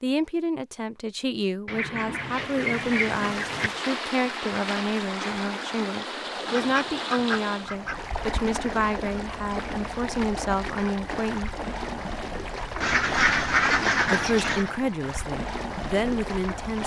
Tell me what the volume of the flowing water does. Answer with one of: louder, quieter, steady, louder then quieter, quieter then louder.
steady.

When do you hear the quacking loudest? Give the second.
14 s.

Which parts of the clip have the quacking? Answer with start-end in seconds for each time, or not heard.
1.6-3.7, 6.5-8.2, 12.8-14.7.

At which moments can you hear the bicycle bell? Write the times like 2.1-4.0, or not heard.
not heard.